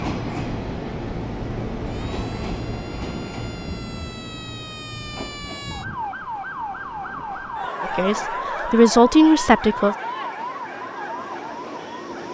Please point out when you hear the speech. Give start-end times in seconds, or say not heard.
7.8-9.9.